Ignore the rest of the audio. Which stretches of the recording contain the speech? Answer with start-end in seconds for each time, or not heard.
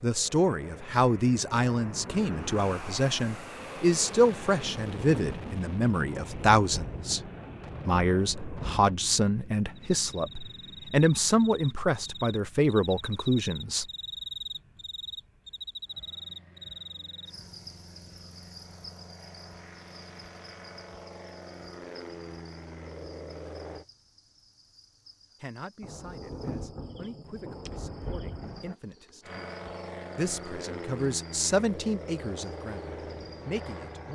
0.0-7.2, 7.8-13.8, 25.4-29.5, 30.1-34.0.